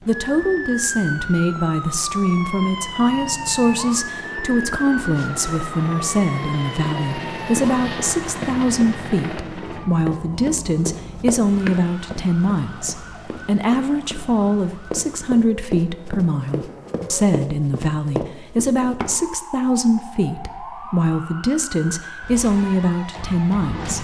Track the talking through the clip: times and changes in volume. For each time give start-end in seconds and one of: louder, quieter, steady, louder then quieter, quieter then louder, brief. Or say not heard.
0.1-23.9 steady.